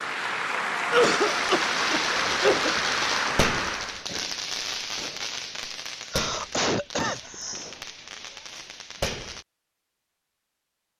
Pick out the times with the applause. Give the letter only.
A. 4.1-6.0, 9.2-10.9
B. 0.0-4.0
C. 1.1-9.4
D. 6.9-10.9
B.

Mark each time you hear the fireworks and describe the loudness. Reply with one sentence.
The fireworks can be heard from 1.1 to 9.4 s, getting quieter.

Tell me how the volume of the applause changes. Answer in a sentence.
The volume of the applause stays about the same.